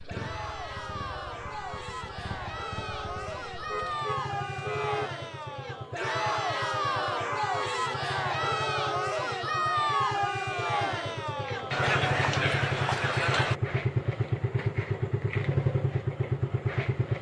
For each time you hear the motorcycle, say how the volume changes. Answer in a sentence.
The motorcycle can be heard from 0.0 to 17.1 s, getting louder.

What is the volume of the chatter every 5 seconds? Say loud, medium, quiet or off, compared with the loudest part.
medium, loud, loud, off.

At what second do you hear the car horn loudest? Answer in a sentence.
The volume of the car horn peaks at 5 seconds.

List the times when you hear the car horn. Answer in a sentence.
You can hear the car horn from 3.6 to 5.1 s.